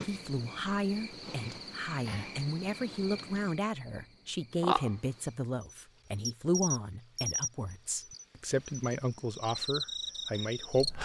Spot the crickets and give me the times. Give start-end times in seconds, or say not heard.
0.0-11.0.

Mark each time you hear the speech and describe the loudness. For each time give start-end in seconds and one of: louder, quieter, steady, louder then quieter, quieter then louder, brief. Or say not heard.
0.0-11.0 steady.